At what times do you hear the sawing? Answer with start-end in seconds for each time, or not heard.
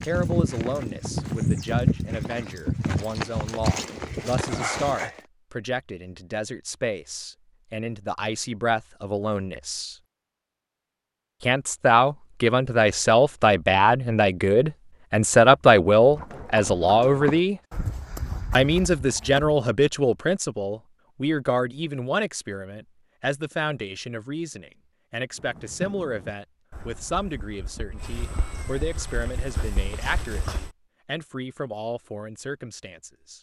not heard.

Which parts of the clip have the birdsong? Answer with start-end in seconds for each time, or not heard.
not heard.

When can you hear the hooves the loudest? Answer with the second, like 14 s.
2 s.